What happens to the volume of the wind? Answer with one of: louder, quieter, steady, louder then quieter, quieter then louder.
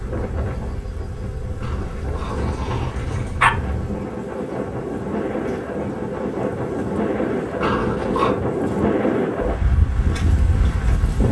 louder.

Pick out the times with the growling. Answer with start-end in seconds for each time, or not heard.
1.6-3.5, 7.6-8.3.